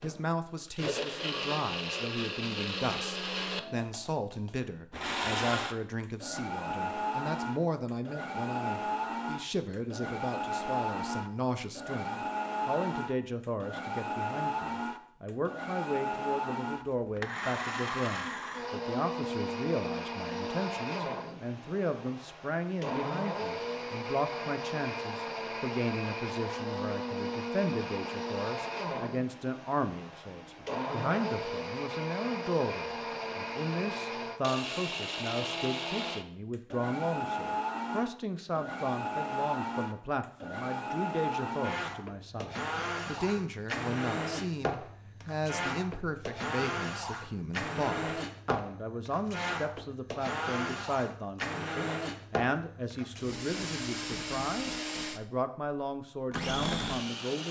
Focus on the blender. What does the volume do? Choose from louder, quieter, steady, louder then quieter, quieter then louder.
steady.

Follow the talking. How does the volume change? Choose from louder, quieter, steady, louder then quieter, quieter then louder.
steady.